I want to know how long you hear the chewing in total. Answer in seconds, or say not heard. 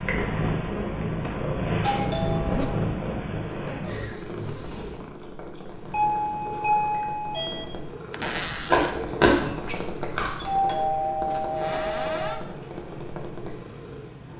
2 s.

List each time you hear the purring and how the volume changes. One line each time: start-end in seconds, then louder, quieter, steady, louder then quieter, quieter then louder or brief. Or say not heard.
0.0-14.3 quieter.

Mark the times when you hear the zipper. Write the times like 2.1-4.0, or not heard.
2.4-2.9, 8.1-9.0.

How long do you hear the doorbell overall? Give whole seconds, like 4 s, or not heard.
5 s.